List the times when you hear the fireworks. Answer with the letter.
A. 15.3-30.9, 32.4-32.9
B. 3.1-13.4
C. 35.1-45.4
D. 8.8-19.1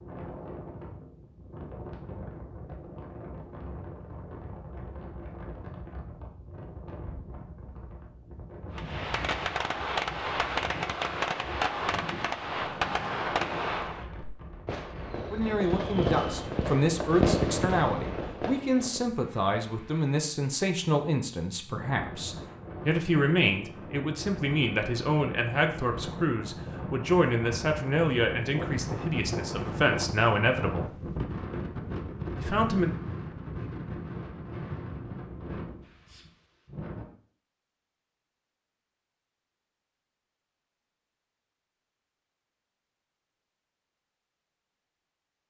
D.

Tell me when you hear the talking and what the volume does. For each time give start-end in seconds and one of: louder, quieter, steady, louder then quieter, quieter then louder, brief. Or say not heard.
15.3-30.9 steady
32.4-32.9 brief.